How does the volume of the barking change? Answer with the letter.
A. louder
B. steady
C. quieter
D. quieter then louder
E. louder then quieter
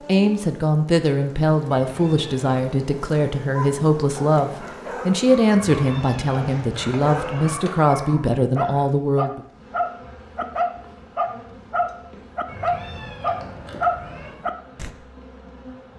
A.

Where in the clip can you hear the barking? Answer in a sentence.
The barking can be heard from 3.5 to 14.9 s.